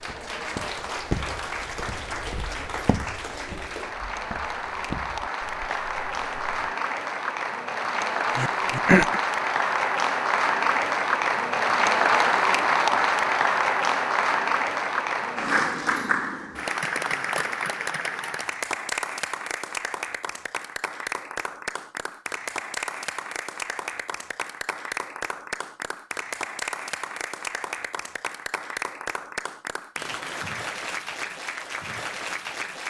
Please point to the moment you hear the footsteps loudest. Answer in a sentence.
The loudest moment of the footsteps is at 1 second.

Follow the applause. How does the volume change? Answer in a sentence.
The volume of the applause goes up, then down.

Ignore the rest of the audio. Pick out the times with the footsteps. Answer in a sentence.
The footsteps can be heard from 0.0 to 6.8 s.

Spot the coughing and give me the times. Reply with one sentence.
The coughing can be heard from 8.3 to 9.2 s.